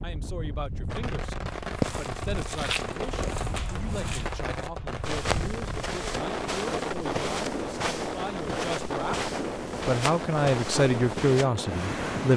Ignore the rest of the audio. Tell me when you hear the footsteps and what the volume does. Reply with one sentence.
The footsteps can be heard from 1.6 to 11.4 s, at a steady volume.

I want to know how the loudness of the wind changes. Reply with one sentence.
The volume of the wind goes up.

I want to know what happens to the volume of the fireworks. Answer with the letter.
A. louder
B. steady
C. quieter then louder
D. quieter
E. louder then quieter
B.